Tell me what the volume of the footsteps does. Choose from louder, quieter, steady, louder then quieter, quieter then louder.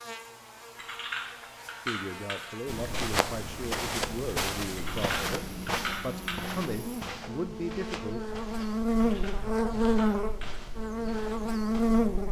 quieter.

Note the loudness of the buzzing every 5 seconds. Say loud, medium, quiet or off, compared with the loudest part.
quiet, loud, loud.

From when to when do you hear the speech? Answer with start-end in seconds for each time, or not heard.
1.9-8.2.